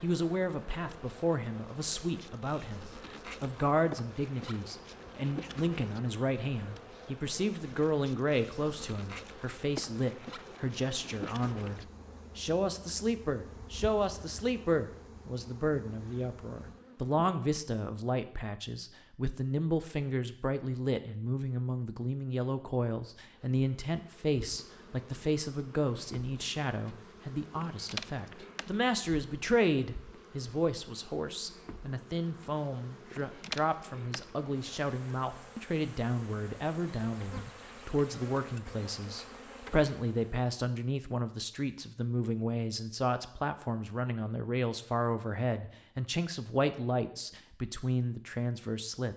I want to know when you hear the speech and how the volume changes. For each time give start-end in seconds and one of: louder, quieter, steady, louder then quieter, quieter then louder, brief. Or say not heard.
0.0-49.1 steady.